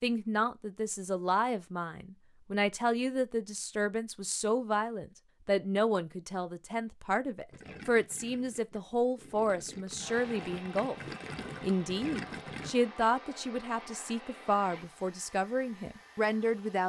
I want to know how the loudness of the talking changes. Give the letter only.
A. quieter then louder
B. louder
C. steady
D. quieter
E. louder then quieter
C.